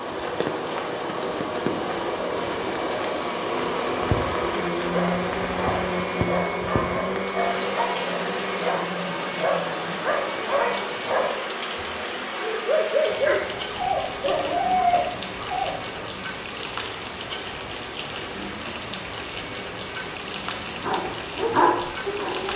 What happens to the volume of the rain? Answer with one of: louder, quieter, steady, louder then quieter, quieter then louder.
steady.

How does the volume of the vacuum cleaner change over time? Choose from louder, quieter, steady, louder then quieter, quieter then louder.
quieter.